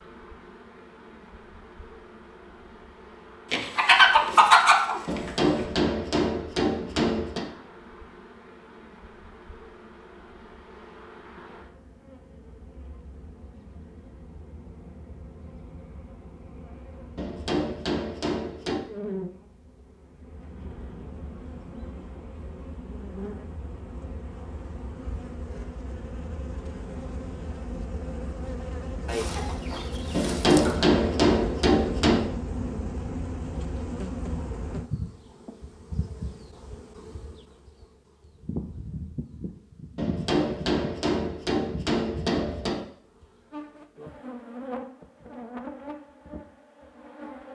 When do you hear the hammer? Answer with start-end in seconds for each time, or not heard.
5.0-7.5, 17.1-18.9, 30.1-32.3, 40.0-42.9.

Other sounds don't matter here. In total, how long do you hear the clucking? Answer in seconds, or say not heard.
4 s.